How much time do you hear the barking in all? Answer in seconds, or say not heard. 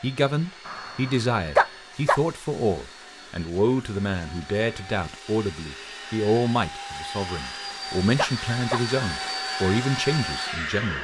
3 s.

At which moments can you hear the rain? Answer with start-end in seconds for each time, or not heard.
not heard.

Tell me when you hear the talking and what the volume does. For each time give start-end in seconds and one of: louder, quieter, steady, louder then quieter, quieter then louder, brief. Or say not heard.
0.0-10.9 steady.